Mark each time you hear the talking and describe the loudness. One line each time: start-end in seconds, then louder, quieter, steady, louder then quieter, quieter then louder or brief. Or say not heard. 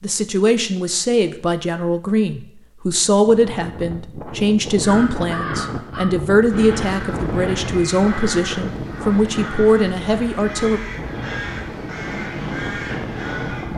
0.0-10.8 steady.